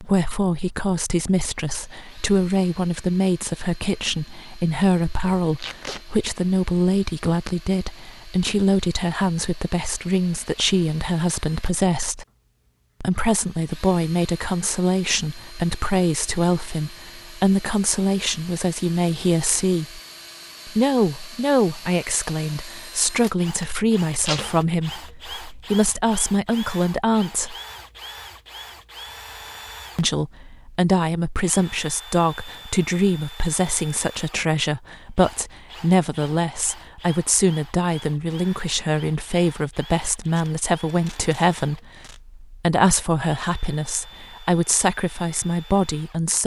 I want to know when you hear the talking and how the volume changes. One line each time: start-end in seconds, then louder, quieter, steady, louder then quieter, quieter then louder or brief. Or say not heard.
0.0-12.2 steady
13.0-20.0 steady
20.6-27.6 steady
29.9-46.4 steady.